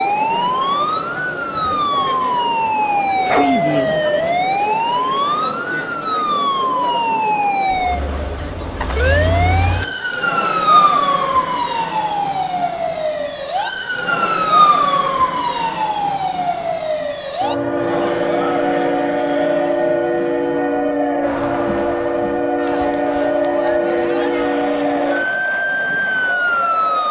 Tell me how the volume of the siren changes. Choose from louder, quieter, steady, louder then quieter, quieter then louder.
steady.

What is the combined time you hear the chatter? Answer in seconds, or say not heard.
27 s.